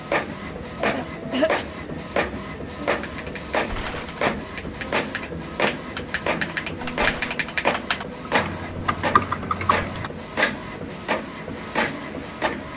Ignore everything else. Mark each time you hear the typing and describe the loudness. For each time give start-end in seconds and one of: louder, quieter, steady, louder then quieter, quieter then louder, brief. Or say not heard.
2.8-10.1 louder.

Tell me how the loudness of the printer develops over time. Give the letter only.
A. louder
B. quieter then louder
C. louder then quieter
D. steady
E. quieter
D.